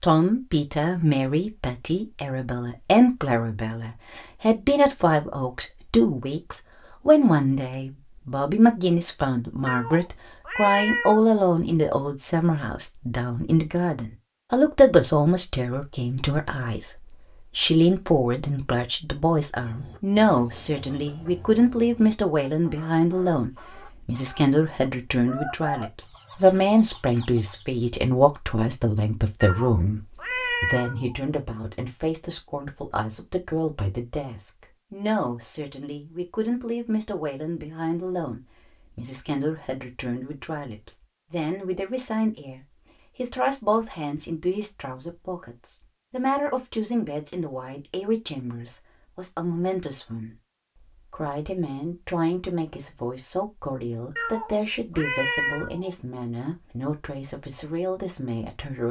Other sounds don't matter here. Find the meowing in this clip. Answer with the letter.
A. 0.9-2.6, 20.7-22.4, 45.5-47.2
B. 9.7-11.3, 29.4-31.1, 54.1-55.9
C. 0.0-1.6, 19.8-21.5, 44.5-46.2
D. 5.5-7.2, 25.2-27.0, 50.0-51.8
B.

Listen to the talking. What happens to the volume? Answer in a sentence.
The volume of the talking goes down.